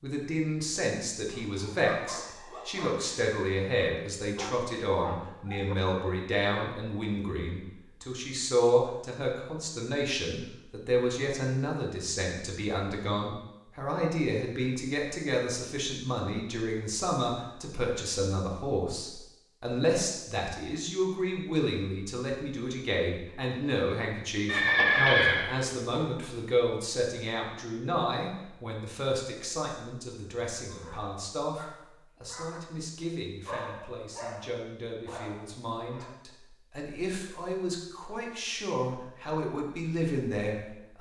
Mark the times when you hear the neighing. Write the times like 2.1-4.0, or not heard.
24.4-26.1.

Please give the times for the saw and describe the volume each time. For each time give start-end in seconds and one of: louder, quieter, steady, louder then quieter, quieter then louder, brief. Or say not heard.
not heard.